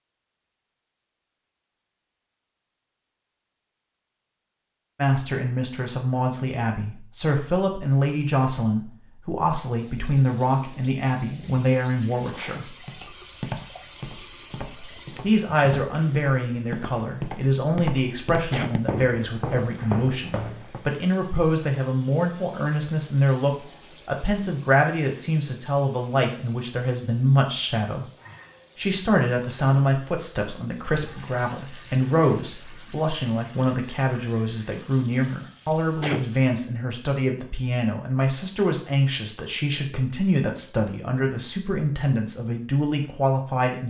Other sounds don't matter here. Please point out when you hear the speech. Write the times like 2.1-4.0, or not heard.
5.0-12.8, 15.2-28.1, 28.8-43.8.